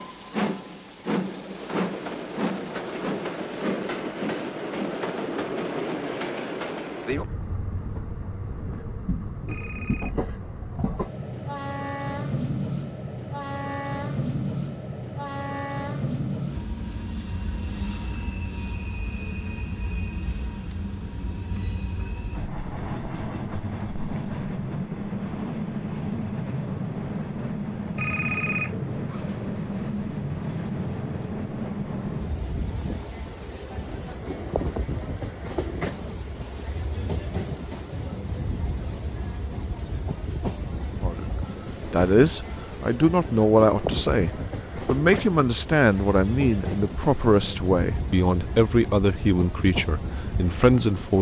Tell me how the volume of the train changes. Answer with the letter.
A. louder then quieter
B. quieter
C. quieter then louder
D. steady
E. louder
D.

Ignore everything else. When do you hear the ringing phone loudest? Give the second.
28 s.